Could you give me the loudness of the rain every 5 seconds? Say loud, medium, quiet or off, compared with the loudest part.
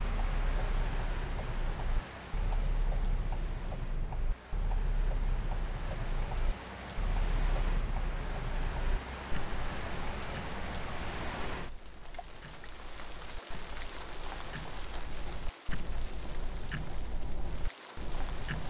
loud, loud, loud, medium.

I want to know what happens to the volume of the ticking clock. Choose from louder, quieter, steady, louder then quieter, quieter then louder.
quieter then louder.